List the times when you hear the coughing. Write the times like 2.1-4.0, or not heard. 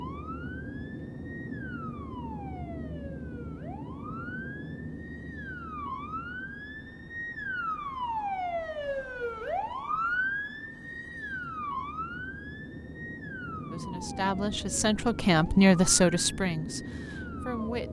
not heard.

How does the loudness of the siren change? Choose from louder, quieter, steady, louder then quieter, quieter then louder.
louder then quieter.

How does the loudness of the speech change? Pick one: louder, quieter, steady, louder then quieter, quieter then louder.
louder then quieter.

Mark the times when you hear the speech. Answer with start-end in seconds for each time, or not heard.
13.7-17.8.